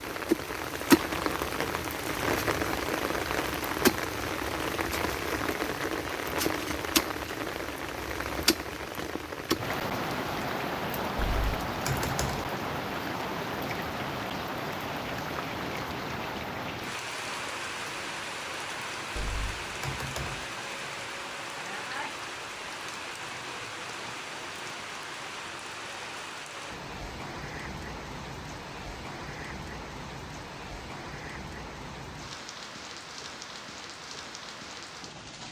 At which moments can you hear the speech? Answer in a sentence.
You can't hear the speech here.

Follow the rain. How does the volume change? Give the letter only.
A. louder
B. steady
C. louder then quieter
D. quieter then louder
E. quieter
E.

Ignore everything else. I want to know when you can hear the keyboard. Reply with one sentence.
The keyboard can be heard from 11.2 to 12.5 s and from 19.1 to 20.4 s.